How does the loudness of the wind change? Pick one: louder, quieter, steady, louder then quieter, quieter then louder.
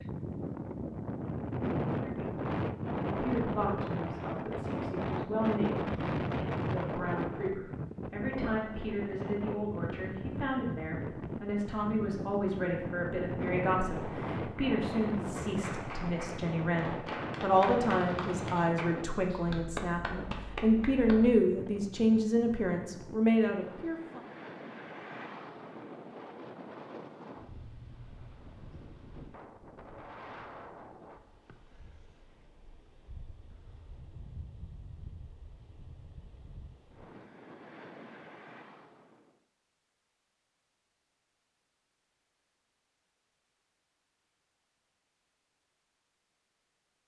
quieter.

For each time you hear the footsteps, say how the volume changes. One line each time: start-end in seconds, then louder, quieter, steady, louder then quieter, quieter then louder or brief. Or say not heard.
not heard.